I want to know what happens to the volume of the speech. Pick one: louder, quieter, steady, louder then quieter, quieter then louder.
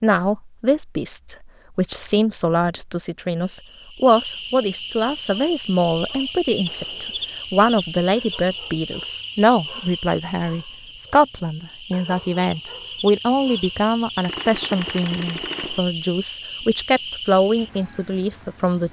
steady.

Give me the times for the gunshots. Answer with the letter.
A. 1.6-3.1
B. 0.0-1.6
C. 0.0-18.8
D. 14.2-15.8
D.